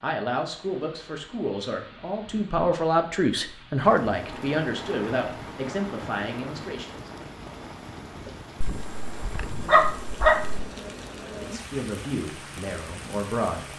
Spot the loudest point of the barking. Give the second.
10 s.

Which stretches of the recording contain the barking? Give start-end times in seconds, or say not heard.
8.6-10.6.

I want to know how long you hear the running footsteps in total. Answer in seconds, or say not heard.
not heard.